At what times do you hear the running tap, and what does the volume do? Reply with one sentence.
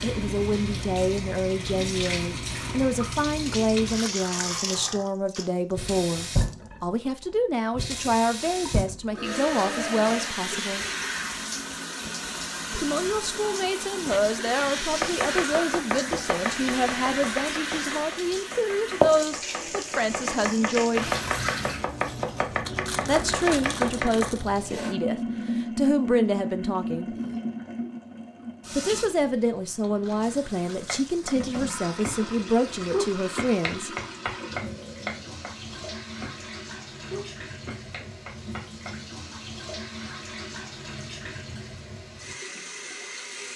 You can hear the running tap from 0.0 to 43.5 s, getting quieter.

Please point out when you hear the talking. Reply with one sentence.
You can hear the talking from 0.0 to 10.8 s, from 12.7 to 21.1 s, from 23.1 to 27.1 s and from 28.7 to 34.0 s.